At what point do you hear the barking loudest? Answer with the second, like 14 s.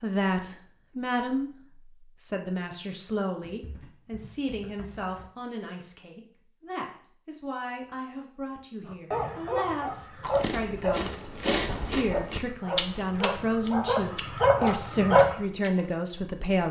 15 s.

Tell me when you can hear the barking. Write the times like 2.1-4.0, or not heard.
9.1-15.3.